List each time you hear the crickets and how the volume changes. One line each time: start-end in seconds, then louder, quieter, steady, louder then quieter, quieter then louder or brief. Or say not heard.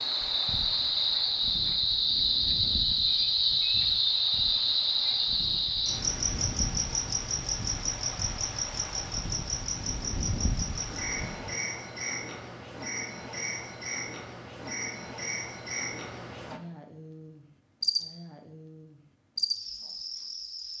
0.0-20.7 quieter.